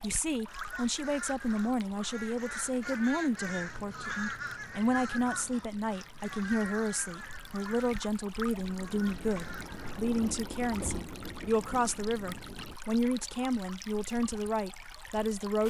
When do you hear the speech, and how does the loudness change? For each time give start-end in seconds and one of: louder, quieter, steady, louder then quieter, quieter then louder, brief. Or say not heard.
0.0-15.6 steady.